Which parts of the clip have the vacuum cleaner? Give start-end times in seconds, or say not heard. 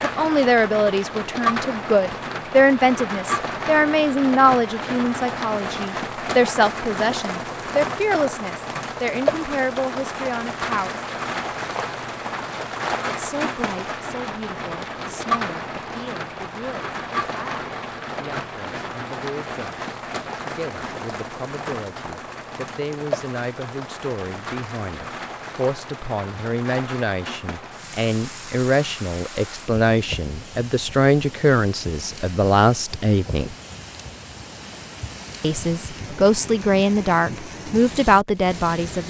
not heard.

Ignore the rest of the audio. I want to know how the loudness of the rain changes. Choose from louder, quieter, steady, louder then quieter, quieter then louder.
quieter.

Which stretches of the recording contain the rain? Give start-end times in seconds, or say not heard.
0.0-39.0.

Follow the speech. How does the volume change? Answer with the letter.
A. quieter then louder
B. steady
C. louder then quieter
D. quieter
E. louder
A.